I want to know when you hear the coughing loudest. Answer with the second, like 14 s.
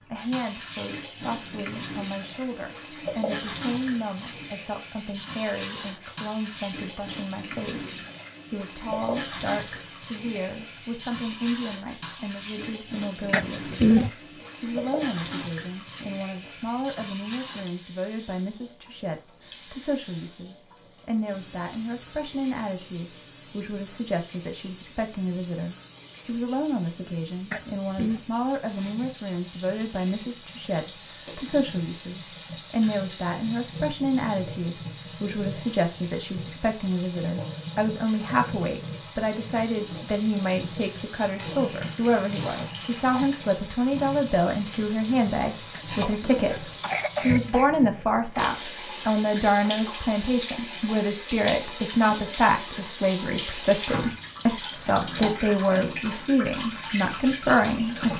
14 s.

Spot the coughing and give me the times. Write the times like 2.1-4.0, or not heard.
13.3-14.1, 27.5-28.2, 45.7-47.7.